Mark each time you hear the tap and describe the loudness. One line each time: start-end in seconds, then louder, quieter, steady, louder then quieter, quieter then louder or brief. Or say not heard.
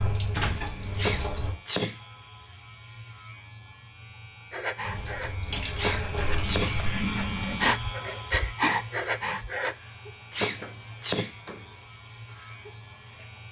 0.0-1.6 brief
4.8-13.4 quieter.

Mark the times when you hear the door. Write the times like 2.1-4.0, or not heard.
0.3-0.9, 10.4-11.8.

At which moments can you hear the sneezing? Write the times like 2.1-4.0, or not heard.
0.9-2.0, 5.8-6.8, 10.3-11.3.